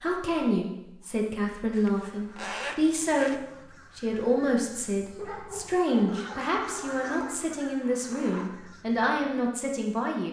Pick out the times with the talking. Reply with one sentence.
You can hear the talking from 0.0 to 10.2 s.